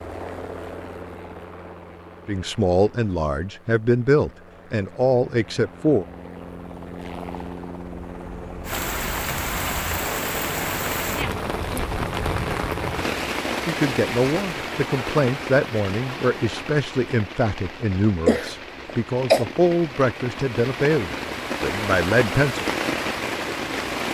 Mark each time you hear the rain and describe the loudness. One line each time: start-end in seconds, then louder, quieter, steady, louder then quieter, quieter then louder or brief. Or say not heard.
8.7-24.0 quieter then louder.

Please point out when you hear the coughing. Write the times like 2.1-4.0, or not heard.
18.2-19.4.